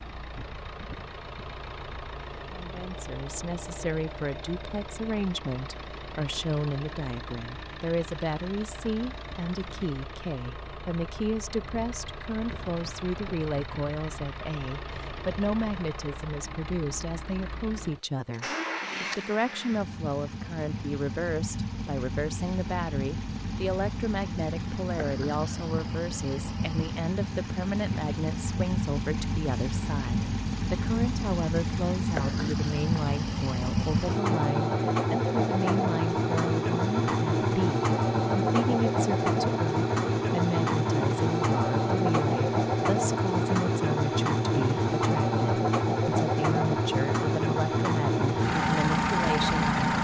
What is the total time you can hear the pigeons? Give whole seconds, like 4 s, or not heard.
not heard.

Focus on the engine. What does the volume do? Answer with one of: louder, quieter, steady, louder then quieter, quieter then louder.
louder.